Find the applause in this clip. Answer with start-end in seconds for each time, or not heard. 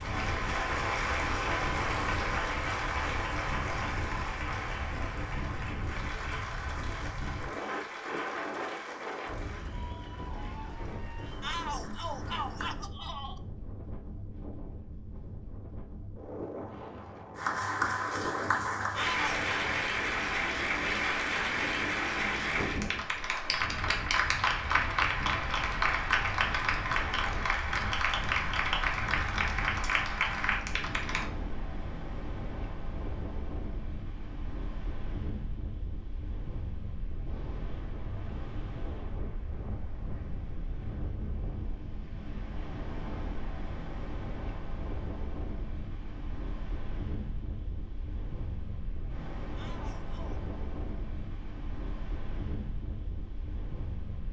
0.0-12.8, 17.4-31.2.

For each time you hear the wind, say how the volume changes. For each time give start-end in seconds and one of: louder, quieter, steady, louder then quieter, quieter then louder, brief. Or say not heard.
0.0-54.2 steady.